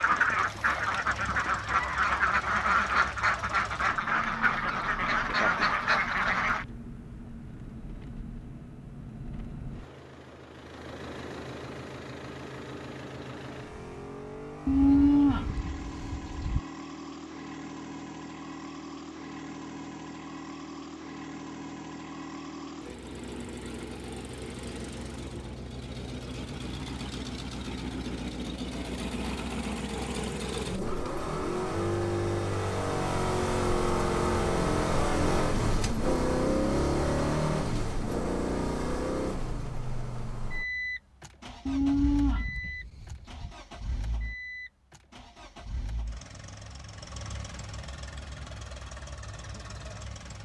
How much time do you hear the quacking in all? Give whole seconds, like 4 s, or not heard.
7 s.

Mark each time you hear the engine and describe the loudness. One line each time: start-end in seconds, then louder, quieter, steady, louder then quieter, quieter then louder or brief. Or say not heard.
0.0-50.4 louder then quieter.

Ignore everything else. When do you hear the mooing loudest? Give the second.
15 s.